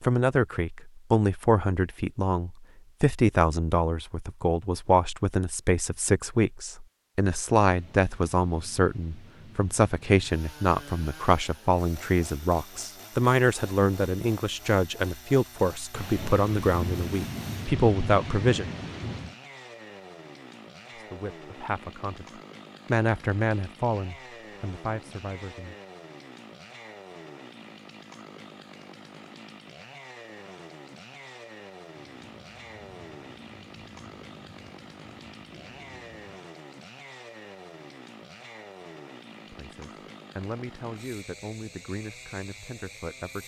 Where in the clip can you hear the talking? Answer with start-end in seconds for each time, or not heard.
0.0-18.6, 20.9-25.8, 39.5-43.4.